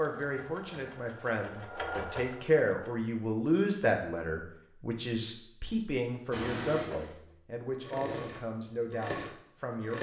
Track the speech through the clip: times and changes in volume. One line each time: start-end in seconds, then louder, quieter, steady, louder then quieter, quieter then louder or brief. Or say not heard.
0.0-9.9 louder then quieter.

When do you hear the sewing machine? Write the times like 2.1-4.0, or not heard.
0.0-2.9, 6.3-9.9.